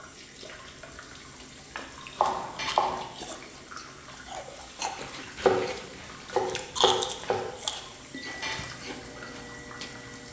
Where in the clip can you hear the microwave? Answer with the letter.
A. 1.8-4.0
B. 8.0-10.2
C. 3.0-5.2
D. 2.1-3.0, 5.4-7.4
B.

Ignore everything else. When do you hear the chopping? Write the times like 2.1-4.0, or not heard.
2.1-3.0, 5.4-7.4.